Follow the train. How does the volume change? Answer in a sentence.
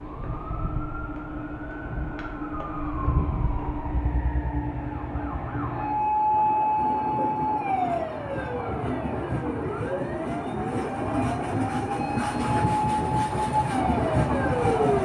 The volume of the train goes up.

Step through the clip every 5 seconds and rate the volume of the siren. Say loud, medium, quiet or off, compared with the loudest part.
medium, loud, loud.